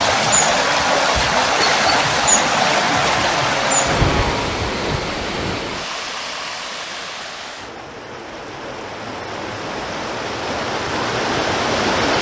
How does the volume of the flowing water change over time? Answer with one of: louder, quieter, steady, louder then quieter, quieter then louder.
quieter then louder.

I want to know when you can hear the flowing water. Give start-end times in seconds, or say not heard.
0.0-12.1.